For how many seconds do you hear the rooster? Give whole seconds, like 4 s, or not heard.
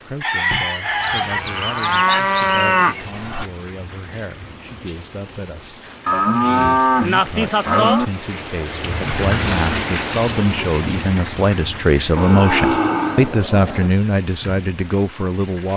2 s.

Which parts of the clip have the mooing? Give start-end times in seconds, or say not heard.
0.5-3.5, 6.0-8.1, 12.2-13.9.